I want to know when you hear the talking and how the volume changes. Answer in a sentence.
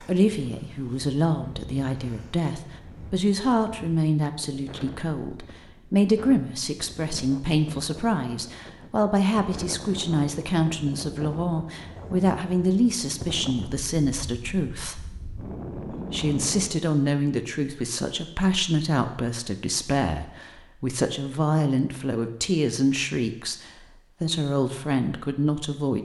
The talking can be heard from 0.0 to 15.1 s, at a steady volume; and from 16.1 to 26.0 s, at a steady volume.